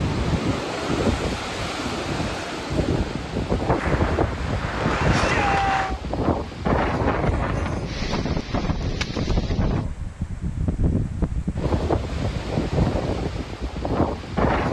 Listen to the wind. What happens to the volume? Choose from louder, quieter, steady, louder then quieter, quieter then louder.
steady.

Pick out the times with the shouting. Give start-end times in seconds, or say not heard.
5.1-5.9.